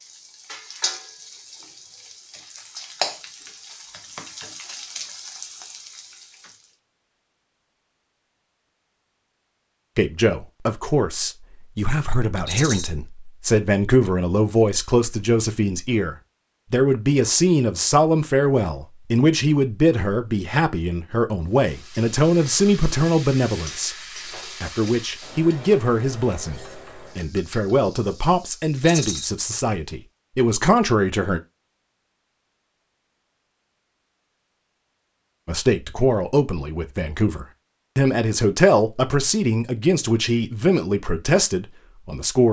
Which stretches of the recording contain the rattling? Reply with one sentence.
The rattling can be heard from 12.4 to 12.9 s and from 28.8 to 29.2 s.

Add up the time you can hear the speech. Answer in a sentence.
The speech can be heard for 28 seconds in total.